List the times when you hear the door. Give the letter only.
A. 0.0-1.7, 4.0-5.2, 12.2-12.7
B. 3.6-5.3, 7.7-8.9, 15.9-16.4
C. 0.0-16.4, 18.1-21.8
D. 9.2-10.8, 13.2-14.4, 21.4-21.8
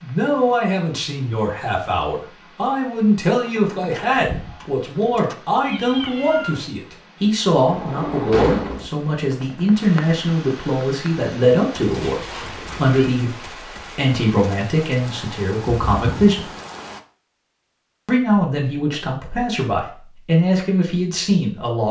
B.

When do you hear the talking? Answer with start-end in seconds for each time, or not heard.
0.0-16.4, 18.1-21.8.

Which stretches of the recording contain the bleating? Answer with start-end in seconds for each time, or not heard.
not heard.